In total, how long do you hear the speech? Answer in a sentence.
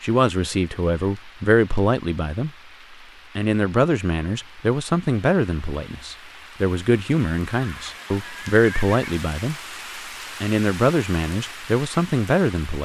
You can hear the speech for 11 seconds altogether.